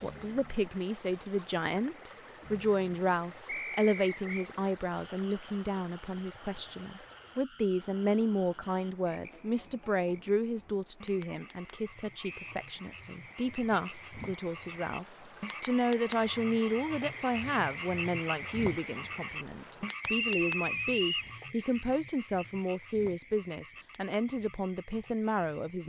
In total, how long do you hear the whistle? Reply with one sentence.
The whistle can be heard for 3 seconds in total.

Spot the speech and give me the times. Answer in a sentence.
You can hear the speech from 0.0 to 25.8 s.